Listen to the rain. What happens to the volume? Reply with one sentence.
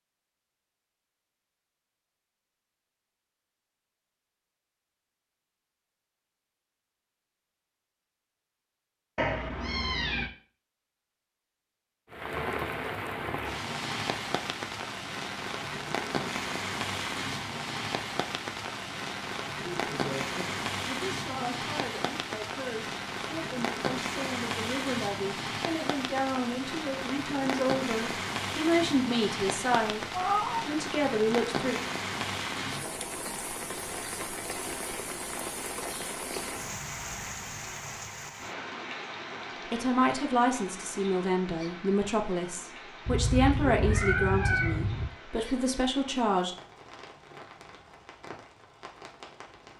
The volume of the rain goes down.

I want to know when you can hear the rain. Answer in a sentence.
You can hear the rain from 12.1 to 49.7 s.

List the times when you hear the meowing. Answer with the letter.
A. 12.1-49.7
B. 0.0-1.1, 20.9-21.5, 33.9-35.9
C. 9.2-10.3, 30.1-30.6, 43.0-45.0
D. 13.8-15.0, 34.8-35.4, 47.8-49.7
C.